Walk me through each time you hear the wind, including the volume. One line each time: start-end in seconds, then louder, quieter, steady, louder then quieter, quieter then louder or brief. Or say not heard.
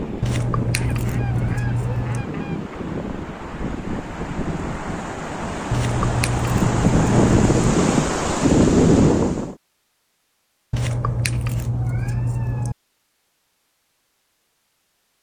0.0-9.6 louder.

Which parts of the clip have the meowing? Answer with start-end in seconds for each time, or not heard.
0.2-2.2, 5.7-7.7, 10.7-12.8.